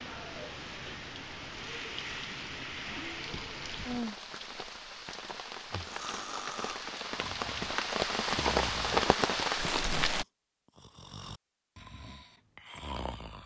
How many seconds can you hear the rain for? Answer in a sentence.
The rain can be heard for 10 seconds in total.